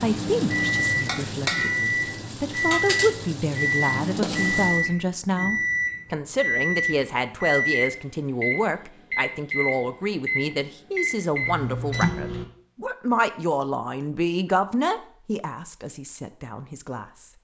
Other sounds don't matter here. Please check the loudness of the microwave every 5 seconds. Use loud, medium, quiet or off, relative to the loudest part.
loud, loud, loud, off.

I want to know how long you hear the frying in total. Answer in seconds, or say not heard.
5 s.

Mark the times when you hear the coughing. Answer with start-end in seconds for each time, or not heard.
not heard.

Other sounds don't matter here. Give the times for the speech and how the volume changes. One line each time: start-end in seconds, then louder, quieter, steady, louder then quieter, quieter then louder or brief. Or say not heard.
0.0-17.3 steady.